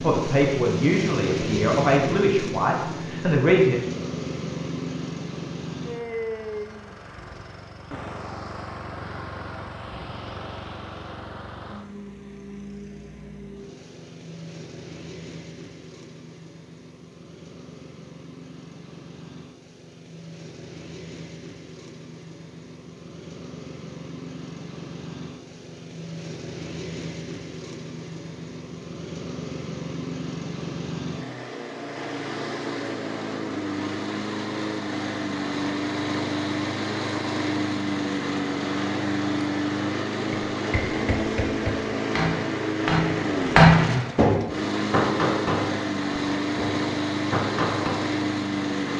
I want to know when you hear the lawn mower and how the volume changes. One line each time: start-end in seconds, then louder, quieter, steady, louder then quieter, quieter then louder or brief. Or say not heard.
0.0-48.9 quieter then louder.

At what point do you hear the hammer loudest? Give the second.
44 s.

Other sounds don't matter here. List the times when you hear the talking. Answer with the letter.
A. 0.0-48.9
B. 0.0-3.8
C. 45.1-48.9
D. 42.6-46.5
B.